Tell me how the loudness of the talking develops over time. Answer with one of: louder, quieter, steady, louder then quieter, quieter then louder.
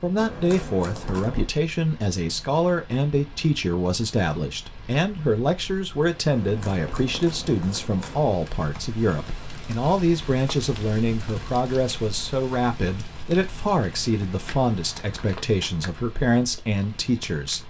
steady.